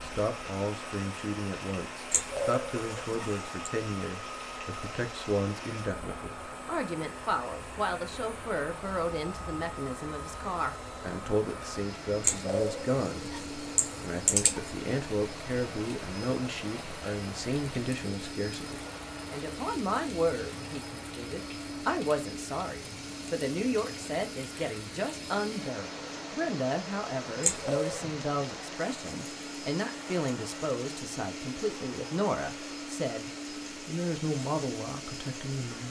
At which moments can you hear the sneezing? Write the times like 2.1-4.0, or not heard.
2.1-3.7, 12.2-14.7, 27.4-28.0.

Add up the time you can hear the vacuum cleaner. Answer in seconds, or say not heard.
36 s.